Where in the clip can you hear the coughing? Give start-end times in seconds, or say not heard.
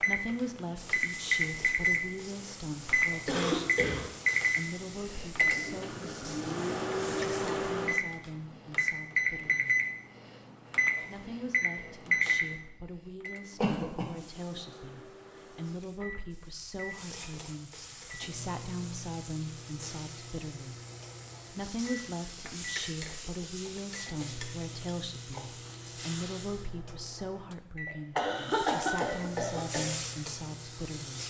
3.2-4.0, 13.6-14.1, 27.9-29.9.